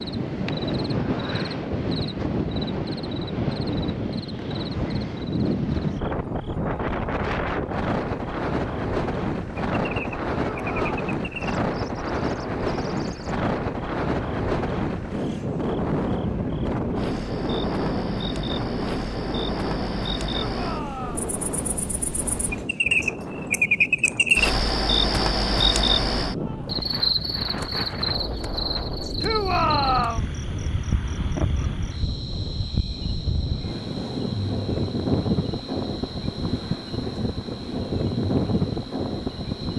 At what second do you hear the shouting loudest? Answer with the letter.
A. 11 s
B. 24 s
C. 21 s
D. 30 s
D.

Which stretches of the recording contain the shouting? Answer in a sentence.
You can hear the shouting from 10.5 to 11.0 s, from 20.4 to 21.2 s and from 29.2 to 30.3 s.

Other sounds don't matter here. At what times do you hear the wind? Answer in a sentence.
You can hear the wind from 0.0 to 39.7 s.